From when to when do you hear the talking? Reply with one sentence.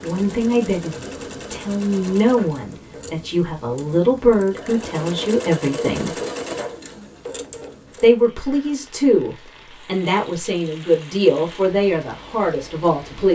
You can hear the talking from 0.0 to 6.2 s and from 8.0 to 13.3 s.